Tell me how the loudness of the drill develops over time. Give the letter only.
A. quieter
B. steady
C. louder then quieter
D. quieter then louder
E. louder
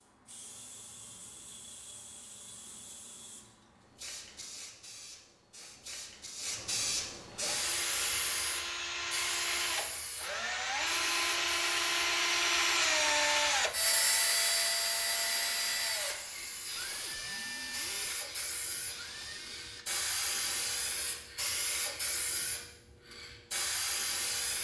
C.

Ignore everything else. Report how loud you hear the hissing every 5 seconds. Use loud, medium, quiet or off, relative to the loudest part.
quiet, loud, medium, medium, loud.